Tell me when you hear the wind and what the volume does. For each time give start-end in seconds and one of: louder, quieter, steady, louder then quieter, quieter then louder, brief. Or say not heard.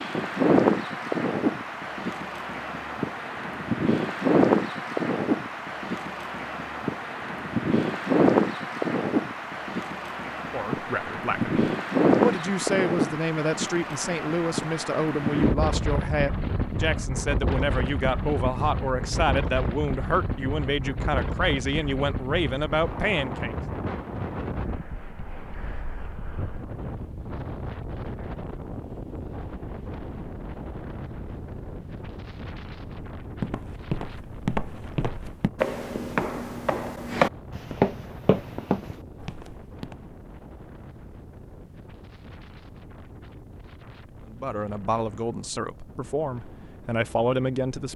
0.0-47.9 quieter.